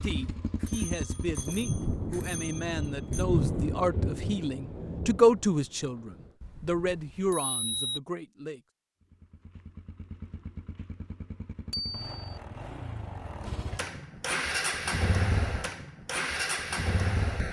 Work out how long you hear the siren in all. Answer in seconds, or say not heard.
not heard.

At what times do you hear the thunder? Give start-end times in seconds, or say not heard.
1.4-6.3.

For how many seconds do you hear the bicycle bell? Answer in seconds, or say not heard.
5 s.